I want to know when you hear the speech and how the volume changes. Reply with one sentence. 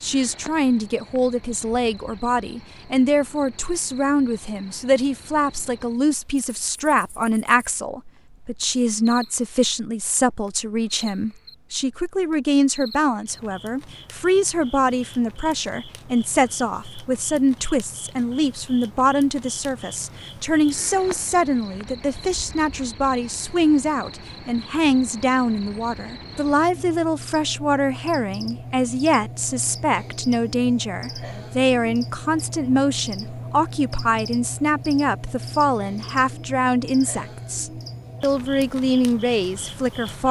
The speech can be heard from 0.0 to 40.2 s, at a steady volume.